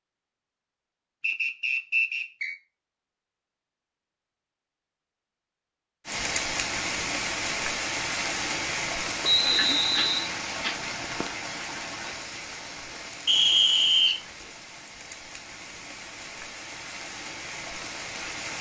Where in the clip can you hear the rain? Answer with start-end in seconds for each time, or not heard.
6.0-18.5.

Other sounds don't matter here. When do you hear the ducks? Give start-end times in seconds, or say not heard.
9.4-12.2.